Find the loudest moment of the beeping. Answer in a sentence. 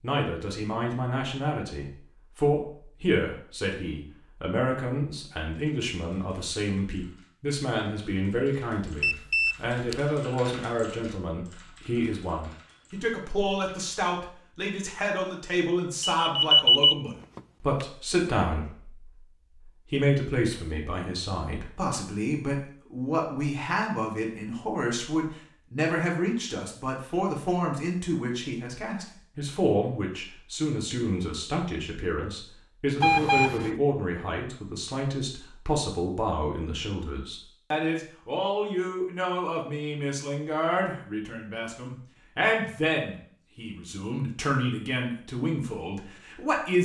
The volume of the beeping peaks at 17 seconds.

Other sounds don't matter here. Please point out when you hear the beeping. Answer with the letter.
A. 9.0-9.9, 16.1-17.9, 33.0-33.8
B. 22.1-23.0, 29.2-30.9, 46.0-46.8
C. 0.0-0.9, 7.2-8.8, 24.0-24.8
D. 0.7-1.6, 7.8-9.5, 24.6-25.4
A.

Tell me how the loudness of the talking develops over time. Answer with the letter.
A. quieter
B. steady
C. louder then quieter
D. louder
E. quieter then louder
B.